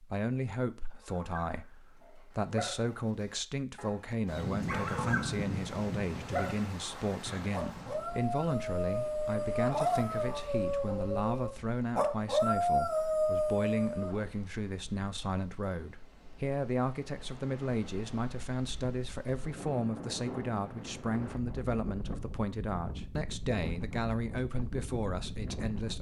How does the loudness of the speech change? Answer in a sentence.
The loudness of the speech stays about the same.